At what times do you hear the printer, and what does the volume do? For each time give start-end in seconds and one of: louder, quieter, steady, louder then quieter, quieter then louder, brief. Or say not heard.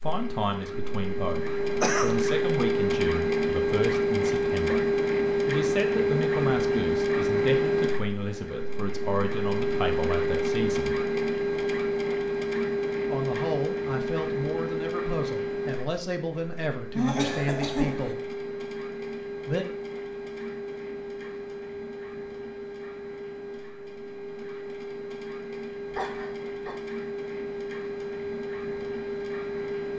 0.0-29.9 quieter.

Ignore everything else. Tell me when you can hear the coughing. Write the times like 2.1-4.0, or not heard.
1.8-2.2, 16.9-18.1, 25.9-26.8.